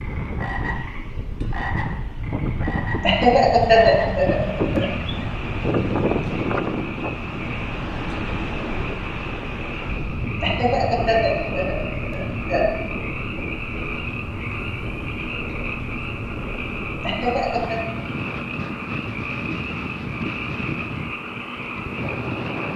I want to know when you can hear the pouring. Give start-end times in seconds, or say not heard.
not heard.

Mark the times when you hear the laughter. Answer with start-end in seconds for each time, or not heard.
3.0-4.8, 10.4-12.7, 17.0-17.8.